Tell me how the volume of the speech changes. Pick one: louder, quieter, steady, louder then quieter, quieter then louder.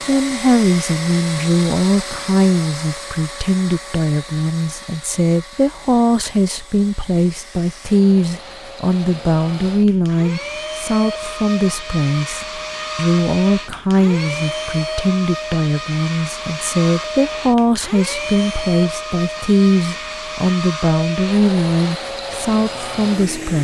steady.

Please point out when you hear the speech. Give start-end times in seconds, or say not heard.
0.1-23.5.